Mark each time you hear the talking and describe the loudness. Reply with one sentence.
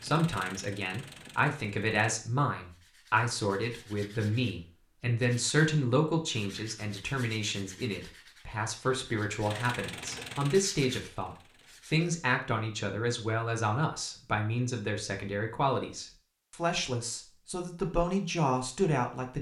You can hear the talking from 0.0 to 19.3 s, at a steady volume.